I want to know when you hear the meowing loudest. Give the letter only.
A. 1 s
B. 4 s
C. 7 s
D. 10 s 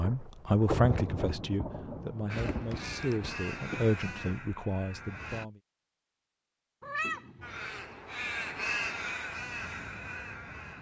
C.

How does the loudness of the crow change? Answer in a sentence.
The volume of the crow goes up, then down.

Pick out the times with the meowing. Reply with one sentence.
The meowing can be heard from 2.3 to 3.1 s and from 6.8 to 7.8 s.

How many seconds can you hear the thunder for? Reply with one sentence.
The thunder can be heard for 4 seconds in total.